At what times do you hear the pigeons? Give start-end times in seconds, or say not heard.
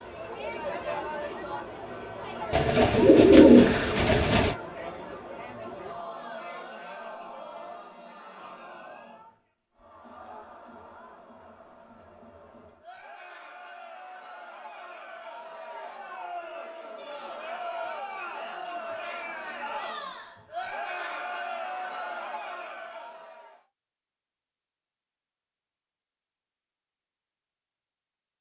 2.5-4.5.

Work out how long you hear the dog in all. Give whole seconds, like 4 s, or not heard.
not heard.